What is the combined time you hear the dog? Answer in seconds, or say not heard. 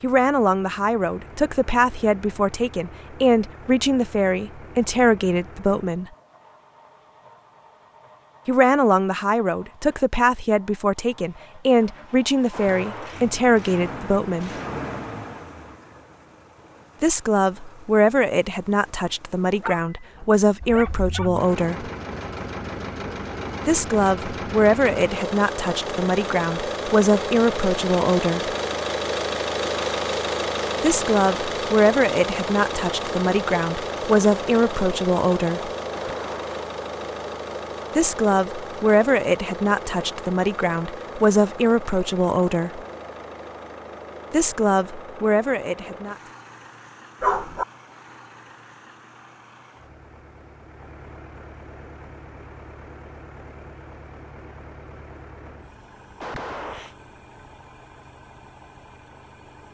2 s.